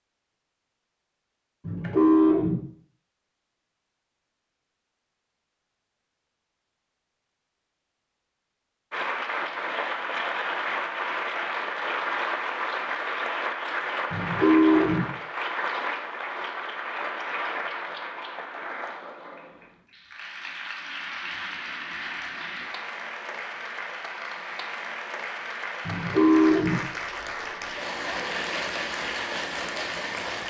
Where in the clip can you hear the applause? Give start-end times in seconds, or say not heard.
8.9-30.4.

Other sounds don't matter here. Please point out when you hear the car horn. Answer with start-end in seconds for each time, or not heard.
1.6-2.5, 14.1-15.1, 25.9-26.8.